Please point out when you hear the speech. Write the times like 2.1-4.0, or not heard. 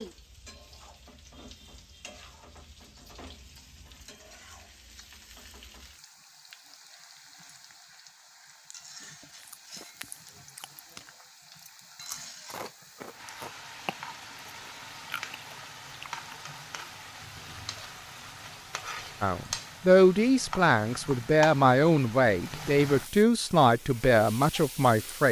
19.2-25.2.